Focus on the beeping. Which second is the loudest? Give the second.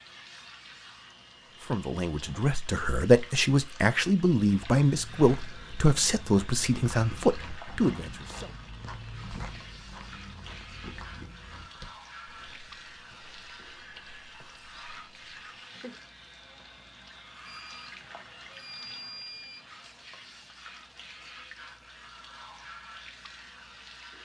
19 s.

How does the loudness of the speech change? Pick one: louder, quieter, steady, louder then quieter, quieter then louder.
steady.